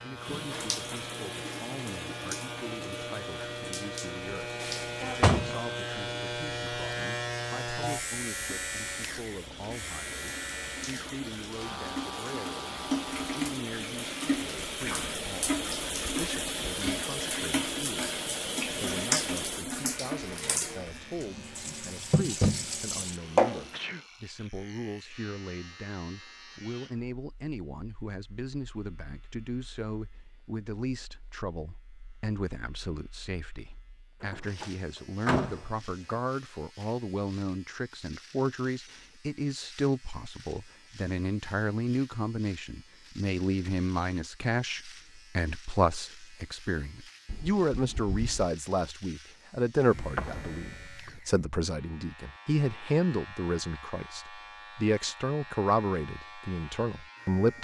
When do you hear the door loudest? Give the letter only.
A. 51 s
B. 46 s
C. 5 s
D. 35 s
C.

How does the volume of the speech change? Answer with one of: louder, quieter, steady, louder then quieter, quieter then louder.
louder.